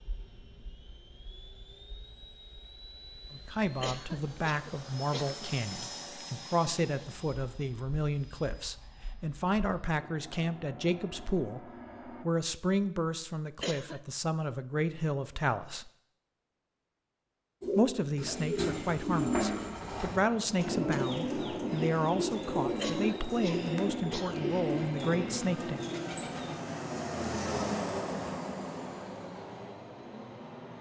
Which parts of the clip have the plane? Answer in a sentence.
The plane can be heard from 0.0 to 12.2 s and from 20.1 to 30.7 s.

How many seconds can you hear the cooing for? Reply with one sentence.
You can hear the cooing for 9 seconds altogether.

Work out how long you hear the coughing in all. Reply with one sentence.
You can hear the coughing for 4 seconds altogether.